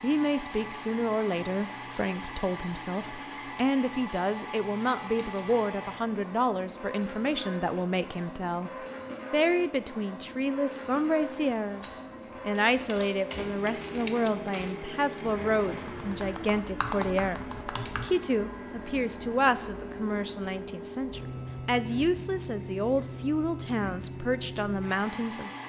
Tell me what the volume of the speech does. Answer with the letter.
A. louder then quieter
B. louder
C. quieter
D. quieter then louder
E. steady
E.